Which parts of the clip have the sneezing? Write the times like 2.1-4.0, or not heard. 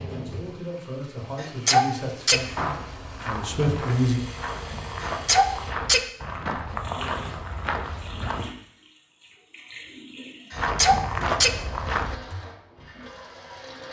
1.4-2.5, 5.0-6.5, 10.5-11.6.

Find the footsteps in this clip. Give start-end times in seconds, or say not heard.
2.3-8.5, 10.5-12.3.